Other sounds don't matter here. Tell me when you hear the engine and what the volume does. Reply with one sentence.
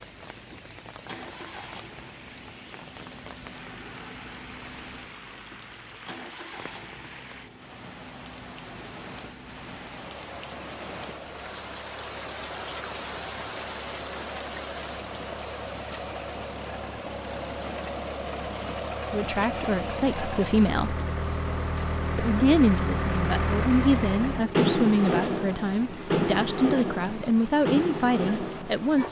The engine can be heard from 0.0 to 29.0 s, getting louder.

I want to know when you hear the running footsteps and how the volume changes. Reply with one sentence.
The running footsteps can't be heard in this clip.